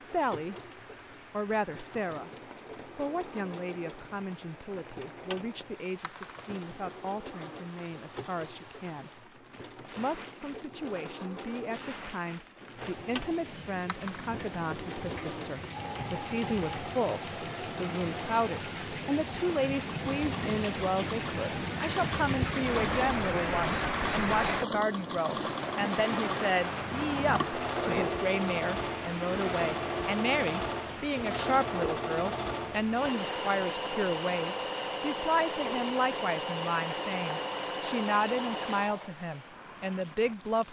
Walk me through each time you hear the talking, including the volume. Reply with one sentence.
You can hear the talking briefly from 0.0 to 0.6 s; and from 1.3 to 40.6 s, getting louder.